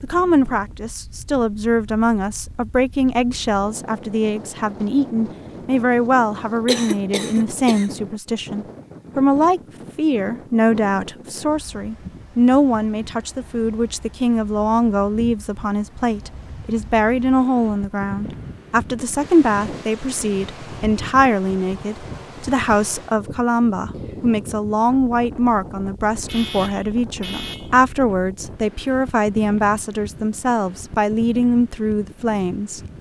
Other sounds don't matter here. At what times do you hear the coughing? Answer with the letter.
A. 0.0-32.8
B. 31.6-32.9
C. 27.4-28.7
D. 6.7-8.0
D.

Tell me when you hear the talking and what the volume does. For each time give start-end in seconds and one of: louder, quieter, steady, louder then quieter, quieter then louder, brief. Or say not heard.
0.0-32.8 steady.